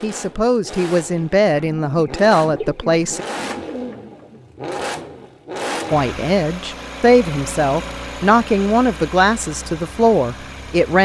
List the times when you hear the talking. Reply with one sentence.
You can hear the talking from 0.0 to 3.2 s and from 5.9 to 10.9 s.